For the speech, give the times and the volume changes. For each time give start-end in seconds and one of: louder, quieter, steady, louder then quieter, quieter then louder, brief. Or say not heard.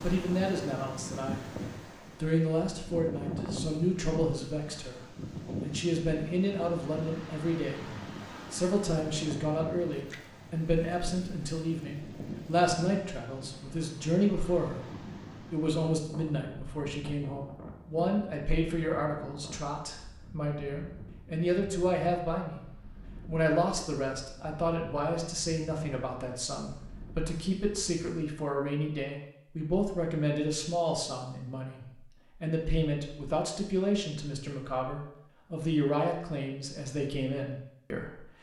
0.0-22.6 steady
23.2-38.3 steady.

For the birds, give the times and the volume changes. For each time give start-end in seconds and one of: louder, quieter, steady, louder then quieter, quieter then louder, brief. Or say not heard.
not heard.